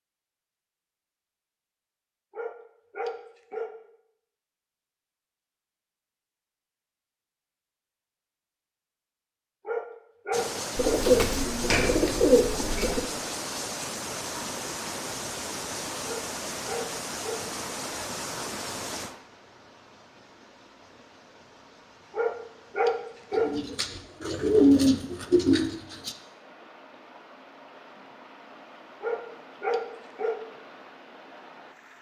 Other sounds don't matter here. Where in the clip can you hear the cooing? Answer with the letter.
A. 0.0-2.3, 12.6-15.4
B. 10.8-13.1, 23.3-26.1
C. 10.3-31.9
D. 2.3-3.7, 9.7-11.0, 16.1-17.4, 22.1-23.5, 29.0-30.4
B.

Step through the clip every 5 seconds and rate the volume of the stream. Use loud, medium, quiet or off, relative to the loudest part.
off, off, loud, loud, quiet, quiet, quiet.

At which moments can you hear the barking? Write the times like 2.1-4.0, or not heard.
2.3-3.7, 9.7-11.0, 16.1-17.4, 22.1-23.5, 29.0-30.4.